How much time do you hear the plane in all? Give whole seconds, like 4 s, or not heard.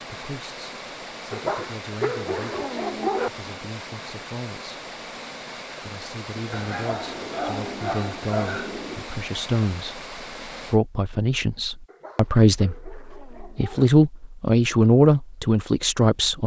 not heard.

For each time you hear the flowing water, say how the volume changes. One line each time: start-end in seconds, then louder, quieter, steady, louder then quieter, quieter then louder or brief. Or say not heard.
0.0-10.8 steady.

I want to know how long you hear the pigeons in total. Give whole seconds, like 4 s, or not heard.
3 s.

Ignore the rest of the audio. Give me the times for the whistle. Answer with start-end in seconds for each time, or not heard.
not heard.